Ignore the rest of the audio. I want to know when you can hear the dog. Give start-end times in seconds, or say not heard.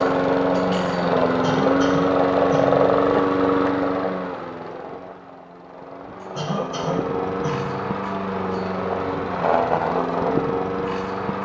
not heard.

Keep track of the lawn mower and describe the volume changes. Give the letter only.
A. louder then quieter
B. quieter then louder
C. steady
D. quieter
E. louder
B.